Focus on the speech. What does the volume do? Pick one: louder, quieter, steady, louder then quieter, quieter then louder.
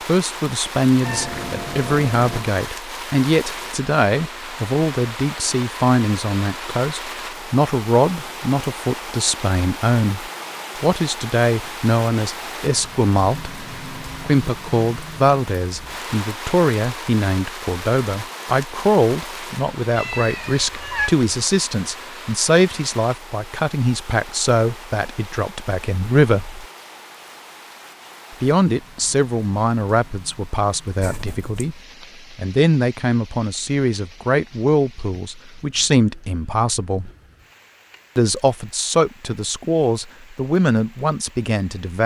steady.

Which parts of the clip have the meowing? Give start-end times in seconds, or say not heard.
1.0-2.5, 19.9-21.1, 31.0-31.6.